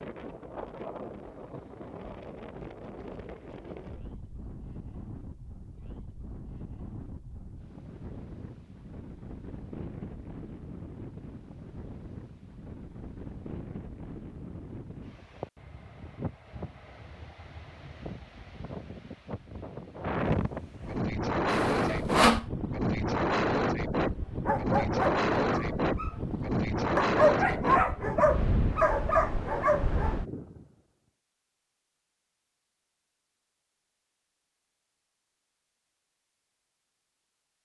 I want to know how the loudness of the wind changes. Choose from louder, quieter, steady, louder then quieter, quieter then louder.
louder.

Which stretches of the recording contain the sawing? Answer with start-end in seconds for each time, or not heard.
21.4-22.4.